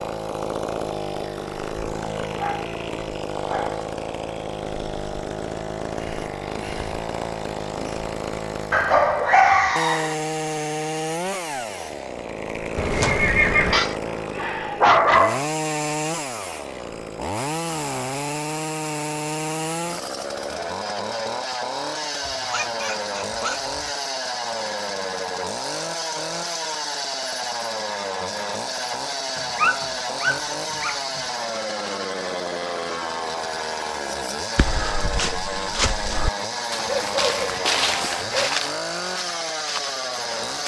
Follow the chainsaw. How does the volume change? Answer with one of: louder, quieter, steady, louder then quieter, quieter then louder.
steady.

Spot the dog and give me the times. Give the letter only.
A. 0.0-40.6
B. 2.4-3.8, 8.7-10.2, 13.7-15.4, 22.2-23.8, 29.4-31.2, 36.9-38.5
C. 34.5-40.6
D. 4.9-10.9
B.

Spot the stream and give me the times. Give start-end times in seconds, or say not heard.
not heard.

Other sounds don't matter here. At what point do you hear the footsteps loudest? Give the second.
38 s.